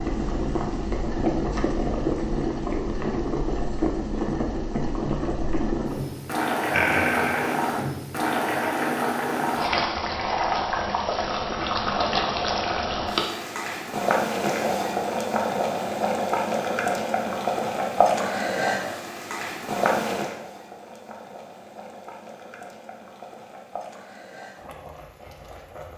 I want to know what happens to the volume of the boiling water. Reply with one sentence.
The volume of the boiling water goes down.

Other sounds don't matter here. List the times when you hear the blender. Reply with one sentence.
You can't hear the blender here.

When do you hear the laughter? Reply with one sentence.
The laughter can be heard from 6.7 to 7.5 s.